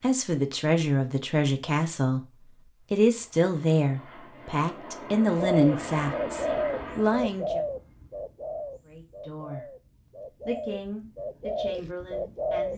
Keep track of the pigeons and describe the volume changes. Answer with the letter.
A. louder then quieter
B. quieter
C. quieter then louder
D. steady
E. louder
C.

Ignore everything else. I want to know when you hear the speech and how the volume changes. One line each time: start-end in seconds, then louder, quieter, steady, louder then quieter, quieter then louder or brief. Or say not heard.
0.0-7.6 steady
8.8-9.7 brief
10.4-12.7 brief.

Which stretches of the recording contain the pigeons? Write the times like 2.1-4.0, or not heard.
5.2-12.7.